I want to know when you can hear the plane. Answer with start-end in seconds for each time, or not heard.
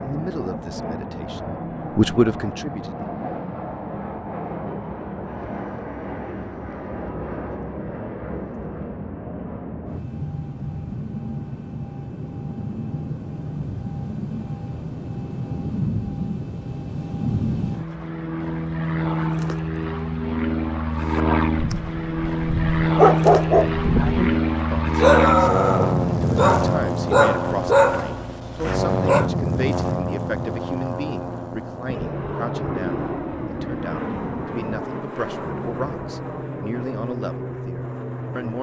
0.0-38.5.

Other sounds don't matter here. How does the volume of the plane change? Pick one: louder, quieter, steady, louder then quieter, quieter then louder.
louder then quieter.